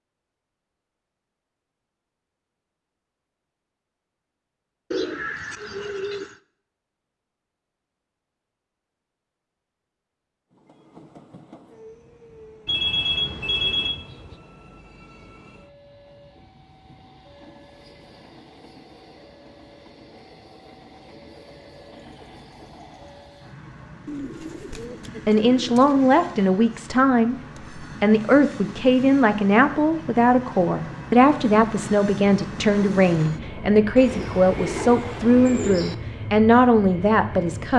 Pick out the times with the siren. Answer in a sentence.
The siren can't be heard in this clip.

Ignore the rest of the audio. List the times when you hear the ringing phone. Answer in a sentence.
The ringing phone can be heard from 12.7 to 13.9 s.